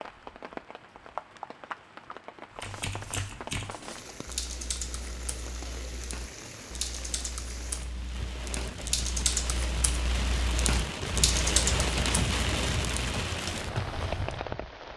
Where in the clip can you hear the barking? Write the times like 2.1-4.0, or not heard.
not heard.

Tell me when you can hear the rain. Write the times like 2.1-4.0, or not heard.
0.0-14.9.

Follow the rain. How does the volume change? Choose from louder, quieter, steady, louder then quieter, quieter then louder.
louder.